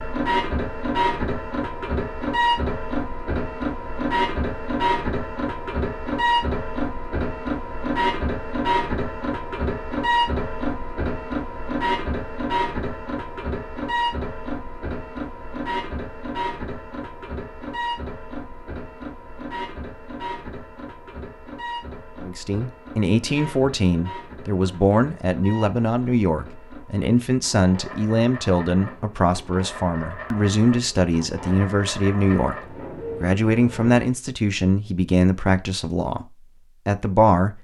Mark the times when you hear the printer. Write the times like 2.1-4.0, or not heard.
0.0-34.1.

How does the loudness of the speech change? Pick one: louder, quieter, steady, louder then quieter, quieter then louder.
steady.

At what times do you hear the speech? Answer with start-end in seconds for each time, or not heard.
22.2-37.5.